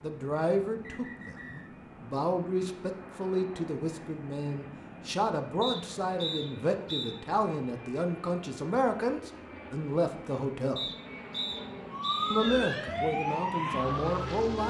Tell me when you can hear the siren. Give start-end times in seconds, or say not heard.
11.9-14.6.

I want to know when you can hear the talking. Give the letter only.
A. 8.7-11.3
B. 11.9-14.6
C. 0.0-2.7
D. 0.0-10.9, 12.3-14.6
D.